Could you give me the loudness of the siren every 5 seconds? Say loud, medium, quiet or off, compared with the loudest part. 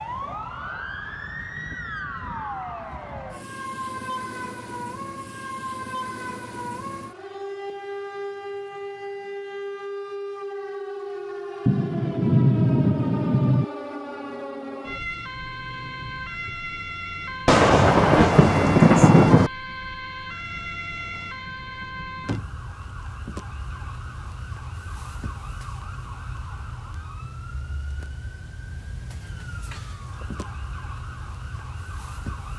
loud, loud, loud, loud, loud, medium, medium.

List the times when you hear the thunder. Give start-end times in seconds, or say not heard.
11.7-13.7, 17.4-19.5.